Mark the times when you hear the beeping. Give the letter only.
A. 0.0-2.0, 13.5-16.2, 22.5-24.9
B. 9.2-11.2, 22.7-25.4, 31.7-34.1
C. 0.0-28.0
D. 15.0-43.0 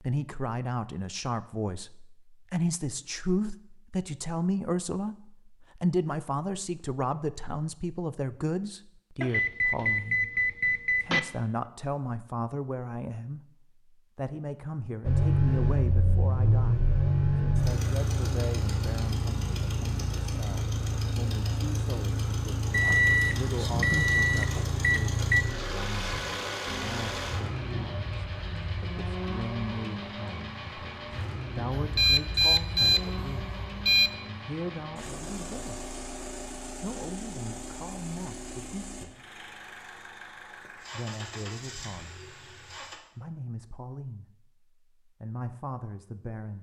B.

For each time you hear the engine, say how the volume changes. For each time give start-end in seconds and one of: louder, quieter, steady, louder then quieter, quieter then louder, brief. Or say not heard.
15.0-43.0 quieter.